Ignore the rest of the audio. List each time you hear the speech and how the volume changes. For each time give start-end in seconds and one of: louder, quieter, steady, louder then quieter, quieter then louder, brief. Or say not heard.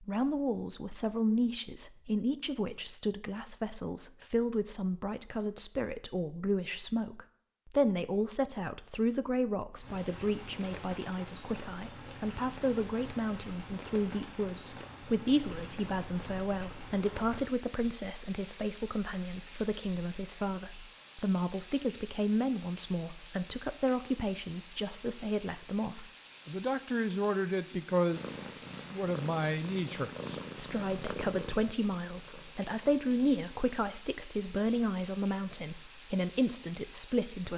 0.0-37.5 steady.